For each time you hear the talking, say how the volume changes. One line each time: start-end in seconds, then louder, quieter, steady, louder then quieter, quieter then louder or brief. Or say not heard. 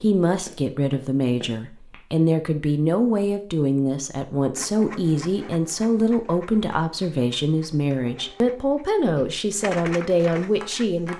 0.0-11.1 steady.